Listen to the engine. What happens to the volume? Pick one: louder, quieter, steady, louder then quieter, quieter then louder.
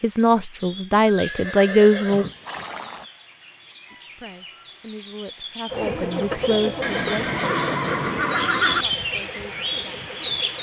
quieter.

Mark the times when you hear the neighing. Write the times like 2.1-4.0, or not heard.
1.1-3.0, 6.8-8.8.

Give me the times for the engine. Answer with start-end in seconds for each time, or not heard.
5.7-10.5.